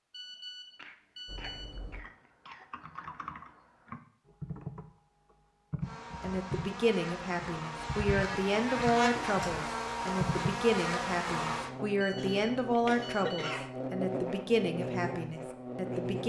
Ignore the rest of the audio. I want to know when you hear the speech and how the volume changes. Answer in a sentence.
You can hear the speech from 6.2 to 16.2 s, at a steady volume.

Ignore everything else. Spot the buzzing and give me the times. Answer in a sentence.
You can hear the buzzing from 5.8 to 16.2 s.